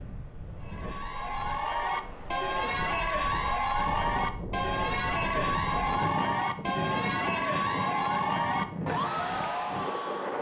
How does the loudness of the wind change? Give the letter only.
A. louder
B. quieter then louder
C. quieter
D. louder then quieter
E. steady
A.